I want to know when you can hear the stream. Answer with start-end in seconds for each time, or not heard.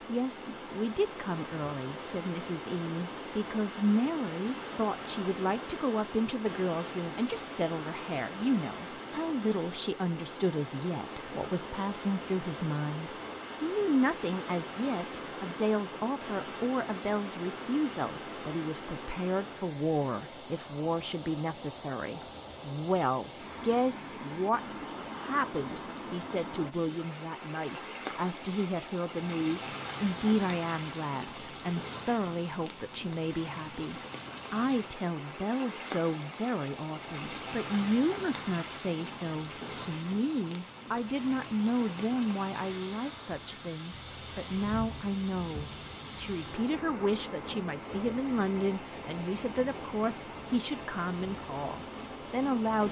0.0-52.8.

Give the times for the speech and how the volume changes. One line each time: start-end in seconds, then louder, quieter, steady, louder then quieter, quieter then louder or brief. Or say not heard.
0.1-52.8 steady.